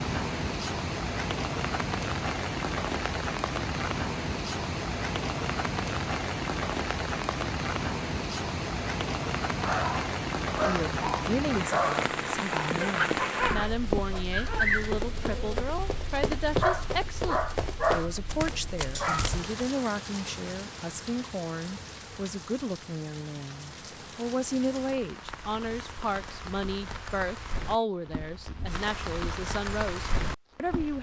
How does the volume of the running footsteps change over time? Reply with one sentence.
The volume of the running footsteps goes down.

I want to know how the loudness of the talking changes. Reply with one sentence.
The loudness of the talking stays about the same.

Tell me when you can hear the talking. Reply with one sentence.
The talking can be heard from 10.7 to 30.9 s.